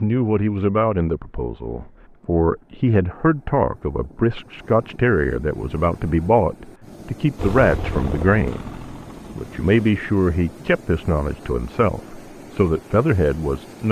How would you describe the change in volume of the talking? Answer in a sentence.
The volume of the talking stays about the same.